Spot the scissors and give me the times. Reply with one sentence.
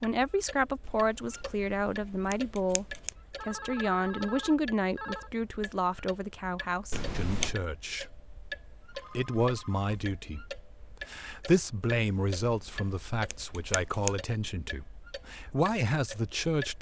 The scissors can be heard from 0.8 to 3.1 s, from 6.9 to 7.5 s and from 11.9 to 14.2 s.